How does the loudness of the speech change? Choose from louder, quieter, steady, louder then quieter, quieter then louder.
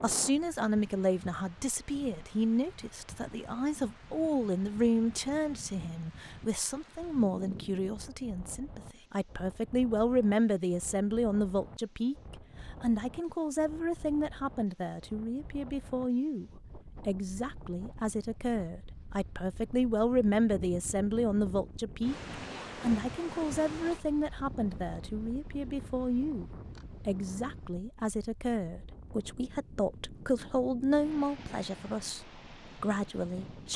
steady.